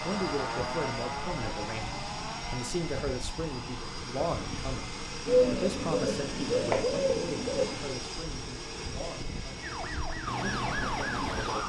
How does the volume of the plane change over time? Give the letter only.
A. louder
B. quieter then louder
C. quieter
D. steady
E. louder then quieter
D.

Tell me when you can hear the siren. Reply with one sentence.
The siren can be heard from 0.0 to 2.7 s and from 9.6 to 11.6 s.